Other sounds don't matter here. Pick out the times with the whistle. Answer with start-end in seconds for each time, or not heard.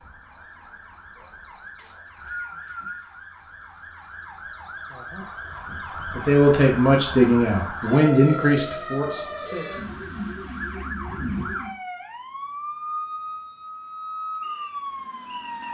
1.8-3.1.